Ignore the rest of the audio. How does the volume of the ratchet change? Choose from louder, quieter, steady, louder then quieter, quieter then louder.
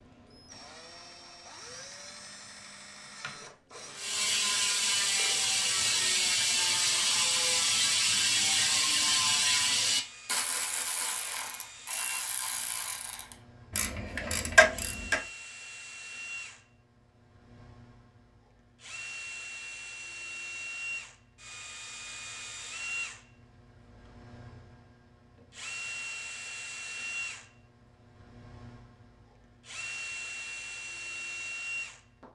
quieter then louder.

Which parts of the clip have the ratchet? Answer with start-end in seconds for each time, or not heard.
4.0-15.2.